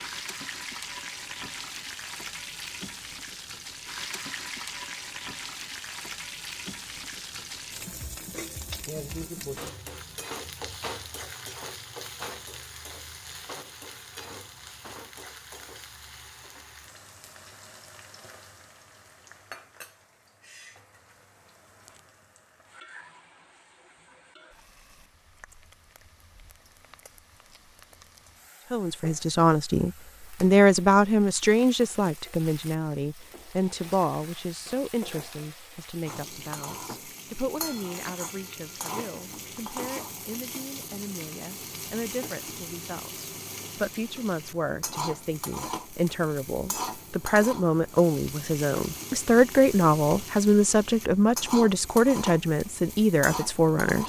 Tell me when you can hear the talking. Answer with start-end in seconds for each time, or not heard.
28.7-54.0.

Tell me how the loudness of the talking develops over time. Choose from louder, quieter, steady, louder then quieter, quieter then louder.
quieter then louder.